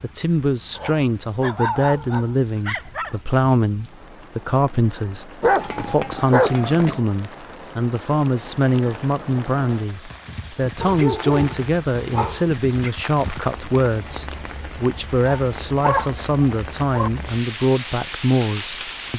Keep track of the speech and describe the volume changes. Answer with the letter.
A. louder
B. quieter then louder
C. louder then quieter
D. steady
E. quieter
D.